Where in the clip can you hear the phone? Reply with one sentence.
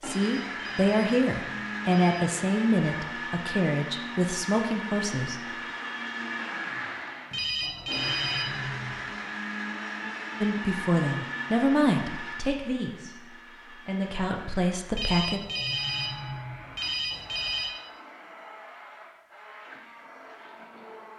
The phone can be heard from 0.0 to 2.3 s, from 7.3 to 9.1 s and from 14.9 to 17.7 s.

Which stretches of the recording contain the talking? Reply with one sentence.
The talking can be heard from 0.0 to 5.5 s and from 10.4 to 15.4 s.